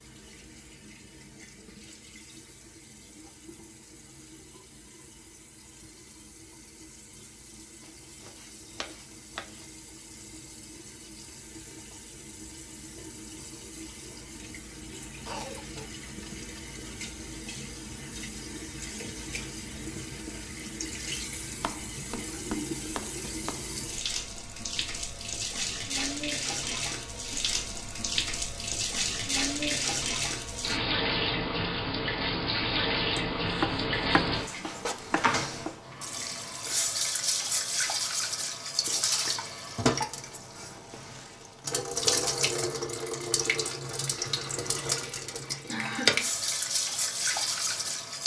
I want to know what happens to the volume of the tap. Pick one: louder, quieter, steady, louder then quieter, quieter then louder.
louder.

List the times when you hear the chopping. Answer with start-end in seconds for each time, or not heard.
7.8-9.7, 21.5-23.7, 33.1-35.8.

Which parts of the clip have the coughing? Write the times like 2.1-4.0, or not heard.
15.2-15.9, 45.6-46.3.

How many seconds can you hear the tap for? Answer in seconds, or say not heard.
48 s.